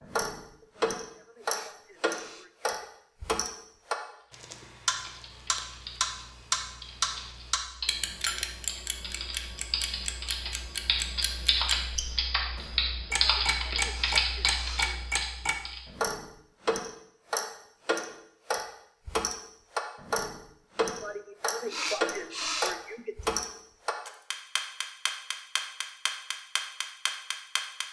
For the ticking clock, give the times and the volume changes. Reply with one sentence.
You can hear the ticking clock from 0.0 to 27.8 s, at a steady volume.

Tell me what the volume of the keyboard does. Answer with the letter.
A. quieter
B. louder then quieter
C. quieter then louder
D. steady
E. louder
E.